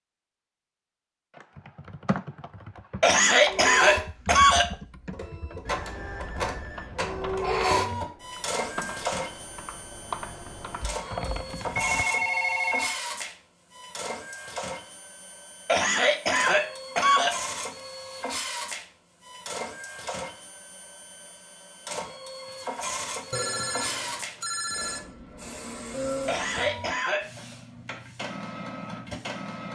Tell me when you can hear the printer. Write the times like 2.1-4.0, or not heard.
3.4-29.7.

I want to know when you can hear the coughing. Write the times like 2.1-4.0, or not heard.
3.0-4.7, 15.7-17.4, 26.2-27.2.